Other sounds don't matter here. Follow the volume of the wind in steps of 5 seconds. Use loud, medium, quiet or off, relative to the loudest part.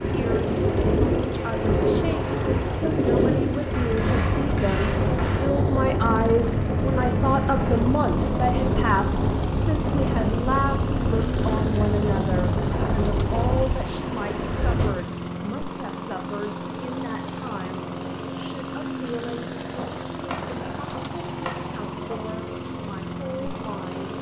loud, loud, loud, off, off.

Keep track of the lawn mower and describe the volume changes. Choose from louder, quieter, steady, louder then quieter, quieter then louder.
steady.